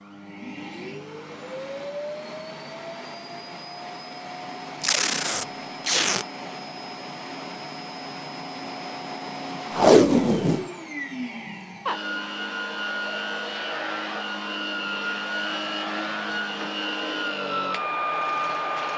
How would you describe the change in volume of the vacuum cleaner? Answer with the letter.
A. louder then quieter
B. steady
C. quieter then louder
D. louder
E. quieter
D.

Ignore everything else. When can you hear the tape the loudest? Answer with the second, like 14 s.
10 s.